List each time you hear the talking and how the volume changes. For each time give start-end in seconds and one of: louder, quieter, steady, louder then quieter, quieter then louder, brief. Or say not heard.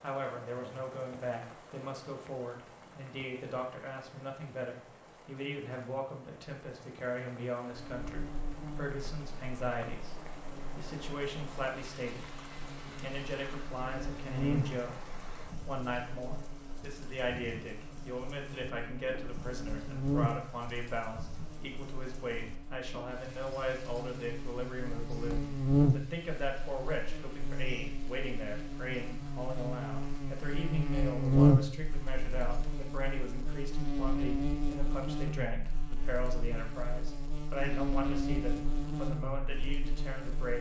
0.0-10.2 steady
10.8-40.5 steady.